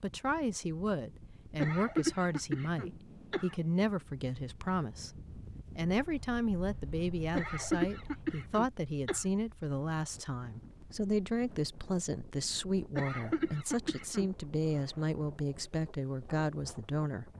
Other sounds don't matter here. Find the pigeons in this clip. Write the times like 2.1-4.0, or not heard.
not heard.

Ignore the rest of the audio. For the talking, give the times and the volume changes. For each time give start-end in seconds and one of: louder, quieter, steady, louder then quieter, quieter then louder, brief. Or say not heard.
0.0-17.3 steady.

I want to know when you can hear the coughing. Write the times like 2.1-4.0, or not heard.
1.6-3.5, 7.3-9.2, 12.9-14.3.